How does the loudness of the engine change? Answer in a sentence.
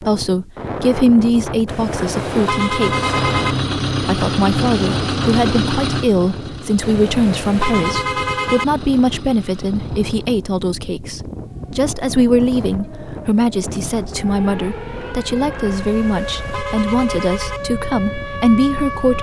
The loudness of the engine goes down.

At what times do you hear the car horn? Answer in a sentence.
You can hear the car horn from 1.6 to 3.5 s, from 6.8 to 8.7 s and from 15.8 to 17.6 s.